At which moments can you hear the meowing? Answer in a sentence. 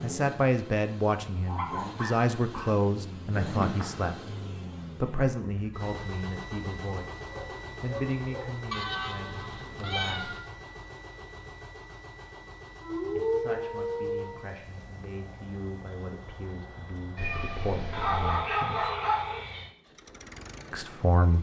The meowing can be heard from 3.4 to 4.1 s, from 8.7 to 10.4 s and from 17.1 to 18.4 s.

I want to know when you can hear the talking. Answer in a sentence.
You can hear the talking from 0.0 to 4.3 s, from 5.0 to 10.4 s, from 13.1 to 18.9 s and from 20.7 to 21.3 s.